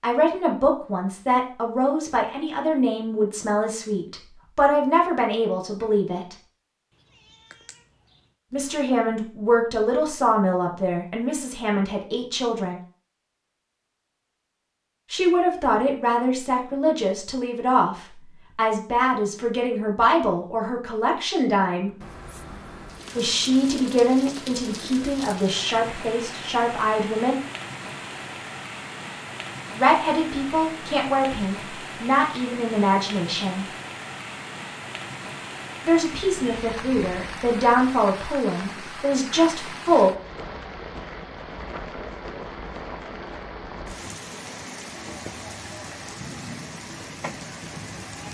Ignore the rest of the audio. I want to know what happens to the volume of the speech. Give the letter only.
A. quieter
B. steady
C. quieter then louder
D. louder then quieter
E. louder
B.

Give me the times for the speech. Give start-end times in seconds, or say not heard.
0.0-6.3, 8.5-12.8, 15.1-21.9, 23.1-27.4, 29.8-33.6, 35.9-40.1.